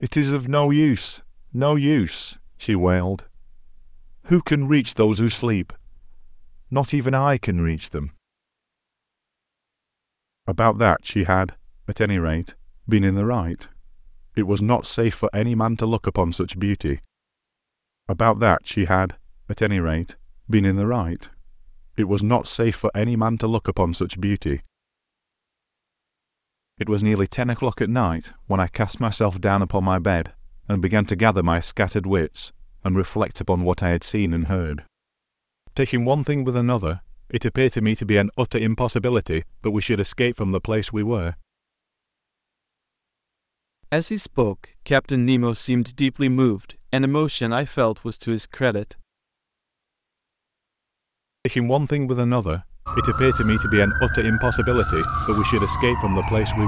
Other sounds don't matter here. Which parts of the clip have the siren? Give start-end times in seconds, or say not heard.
52.9-56.6.